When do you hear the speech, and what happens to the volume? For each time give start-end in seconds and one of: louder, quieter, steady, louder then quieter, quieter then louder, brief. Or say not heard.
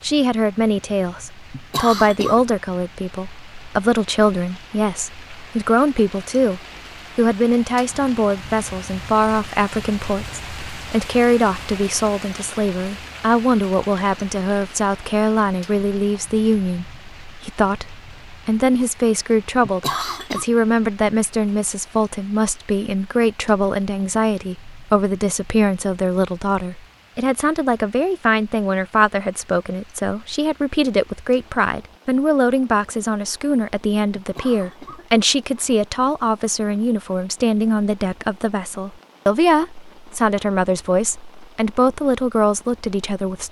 0.0-43.4 steady.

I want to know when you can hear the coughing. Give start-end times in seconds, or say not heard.
1.5-2.4, 19.6-20.4, 34.1-35.6.